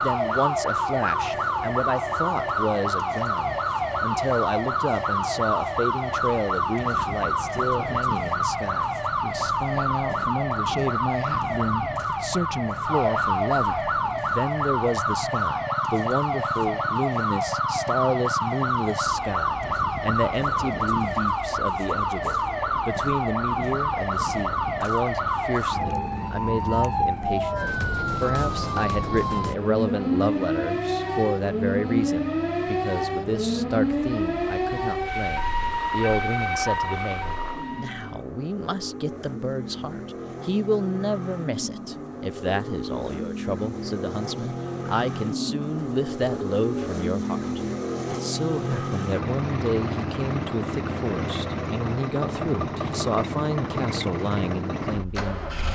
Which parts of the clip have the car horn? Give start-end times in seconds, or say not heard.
not heard.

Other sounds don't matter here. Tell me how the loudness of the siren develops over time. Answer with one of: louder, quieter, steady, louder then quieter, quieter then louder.
steady.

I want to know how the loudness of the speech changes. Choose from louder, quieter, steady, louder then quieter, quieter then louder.
steady.